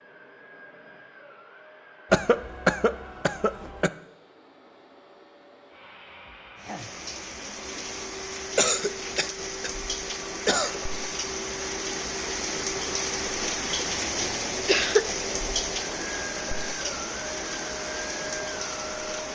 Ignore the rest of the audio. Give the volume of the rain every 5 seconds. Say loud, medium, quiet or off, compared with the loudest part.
off, medium, loud, loud.